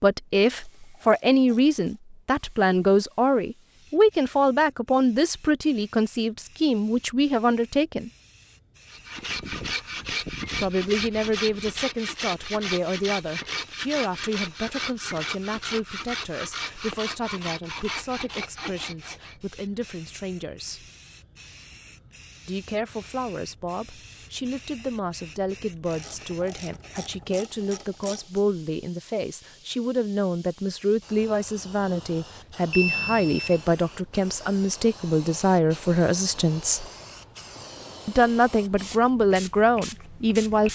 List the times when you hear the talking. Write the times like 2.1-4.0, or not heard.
0.0-8.1, 10.6-20.9, 22.4-36.9, 38.0-40.7.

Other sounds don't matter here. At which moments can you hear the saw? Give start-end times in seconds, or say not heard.
8.9-19.4.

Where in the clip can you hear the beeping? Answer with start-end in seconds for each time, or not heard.
32.7-33.8.